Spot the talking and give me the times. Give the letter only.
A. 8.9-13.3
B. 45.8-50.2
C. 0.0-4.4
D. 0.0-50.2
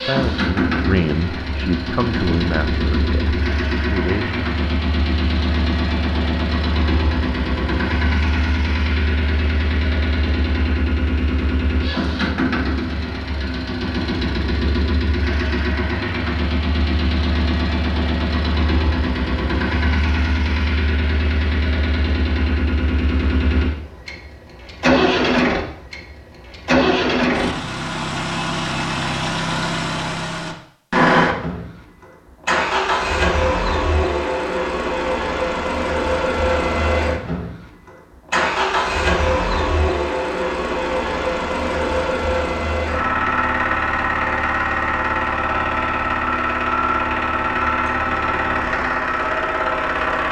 C.